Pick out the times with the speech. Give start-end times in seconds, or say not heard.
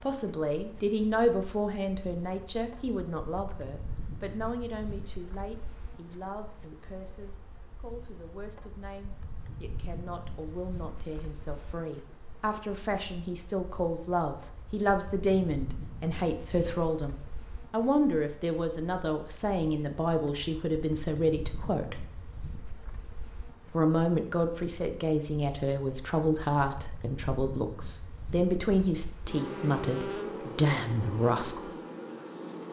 0.0-22.1, 23.7-31.7.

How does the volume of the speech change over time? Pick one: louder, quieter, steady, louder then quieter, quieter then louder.
quieter then louder.